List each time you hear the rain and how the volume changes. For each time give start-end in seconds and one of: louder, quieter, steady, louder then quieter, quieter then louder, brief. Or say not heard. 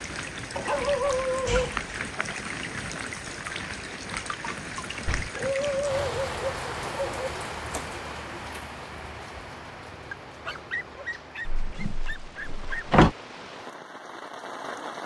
0.0-15.0 quieter.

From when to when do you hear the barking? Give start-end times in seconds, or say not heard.
0.6-2.2, 5.3-7.3, 10.1-12.8.